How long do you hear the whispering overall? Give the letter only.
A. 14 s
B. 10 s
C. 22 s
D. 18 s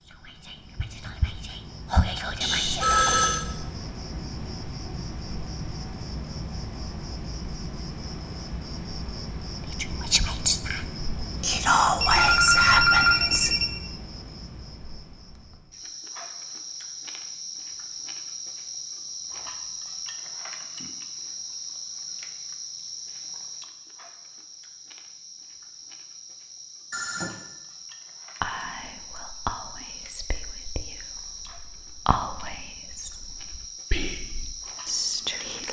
A.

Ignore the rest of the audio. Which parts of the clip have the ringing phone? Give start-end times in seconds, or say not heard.
2.4-3.5, 12.0-13.7, 26.9-27.4.